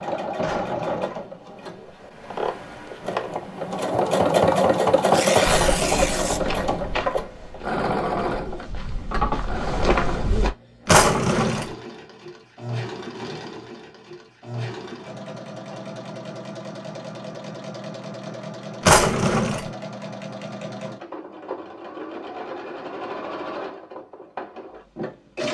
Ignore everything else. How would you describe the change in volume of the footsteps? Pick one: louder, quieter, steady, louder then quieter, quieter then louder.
quieter then louder.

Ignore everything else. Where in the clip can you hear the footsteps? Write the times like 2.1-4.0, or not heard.
5.5-10.5.